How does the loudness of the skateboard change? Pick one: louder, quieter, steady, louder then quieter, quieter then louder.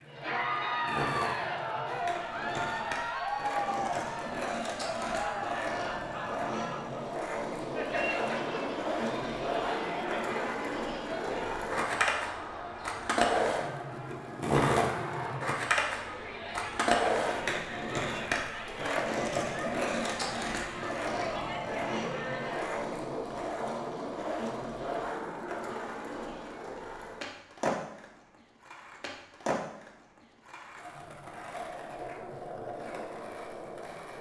louder then quieter.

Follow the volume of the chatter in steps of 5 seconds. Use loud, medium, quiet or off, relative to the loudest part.
loud, loud, medium, medium, medium, off, off.